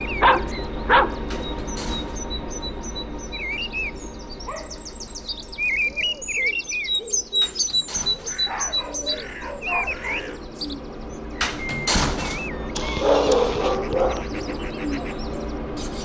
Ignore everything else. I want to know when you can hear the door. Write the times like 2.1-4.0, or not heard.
1.3-2.2, 7.4-8.5, 11.4-12.5.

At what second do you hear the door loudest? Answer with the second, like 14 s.
12 s.